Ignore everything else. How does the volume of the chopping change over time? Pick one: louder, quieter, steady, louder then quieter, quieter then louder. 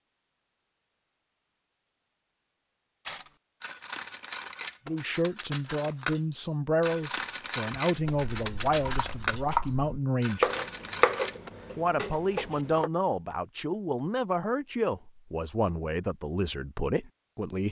louder then quieter.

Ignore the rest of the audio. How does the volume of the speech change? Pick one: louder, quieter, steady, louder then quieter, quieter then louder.
steady.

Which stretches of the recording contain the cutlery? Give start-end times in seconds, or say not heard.
3.0-11.5.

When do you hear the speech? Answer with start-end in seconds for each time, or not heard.
4.8-10.4, 11.8-17.6.